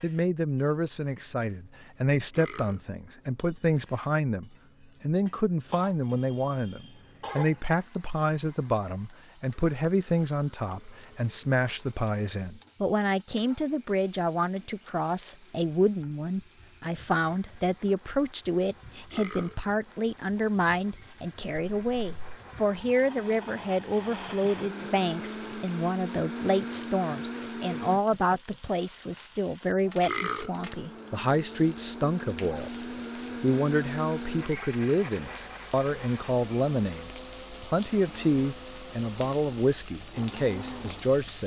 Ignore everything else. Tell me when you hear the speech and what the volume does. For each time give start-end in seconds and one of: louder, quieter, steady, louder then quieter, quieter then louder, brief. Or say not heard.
0.0-41.4 steady.